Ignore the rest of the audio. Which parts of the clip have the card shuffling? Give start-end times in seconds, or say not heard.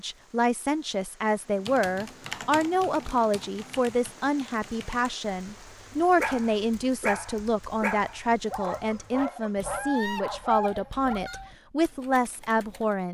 not heard.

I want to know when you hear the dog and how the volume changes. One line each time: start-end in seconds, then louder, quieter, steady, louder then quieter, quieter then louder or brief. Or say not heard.
6.2-11.5 steady.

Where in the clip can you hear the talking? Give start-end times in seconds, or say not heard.
0.0-13.1.